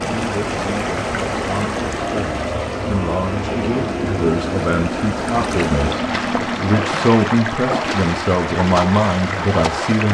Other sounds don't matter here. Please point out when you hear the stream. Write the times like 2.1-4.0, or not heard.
0.0-10.0.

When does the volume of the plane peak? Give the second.
4 s.